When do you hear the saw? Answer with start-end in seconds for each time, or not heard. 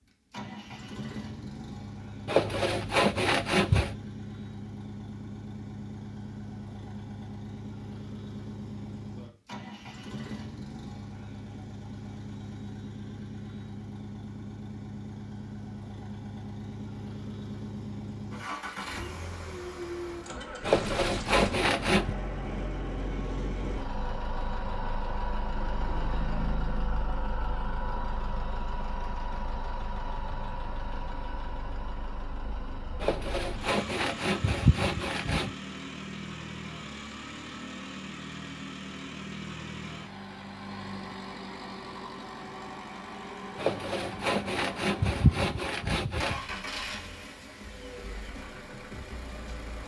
2.2-4.0, 20.6-22.1, 33.0-35.5, 43.5-46.4.